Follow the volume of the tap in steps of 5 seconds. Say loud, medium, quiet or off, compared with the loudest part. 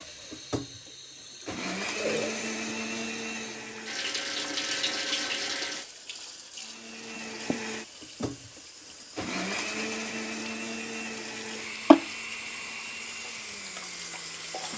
medium, medium, loud.